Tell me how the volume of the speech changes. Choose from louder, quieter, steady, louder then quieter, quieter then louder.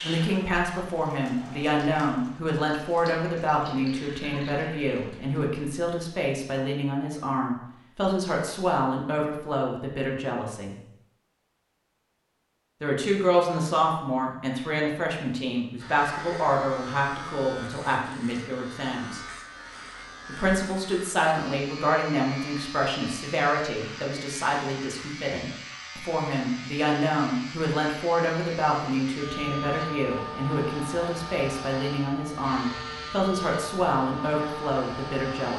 steady.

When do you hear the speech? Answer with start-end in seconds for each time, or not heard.
0.0-10.8, 12.8-19.2, 20.2-35.5.